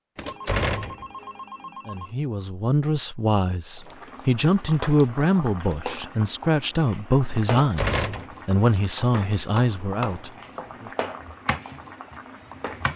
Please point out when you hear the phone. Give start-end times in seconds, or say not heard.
0.2-2.1.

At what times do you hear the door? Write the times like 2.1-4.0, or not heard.
0.1-1.1, 7.5-8.3.